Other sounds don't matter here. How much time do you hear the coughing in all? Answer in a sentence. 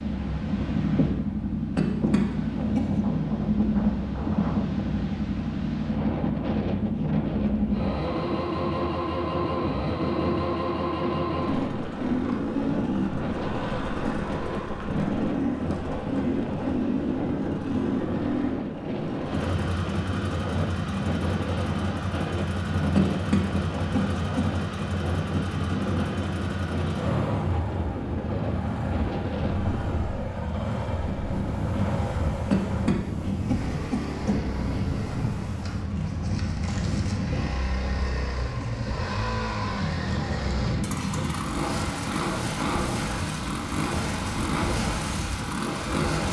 You can hear the coughing for 5 seconds altogether.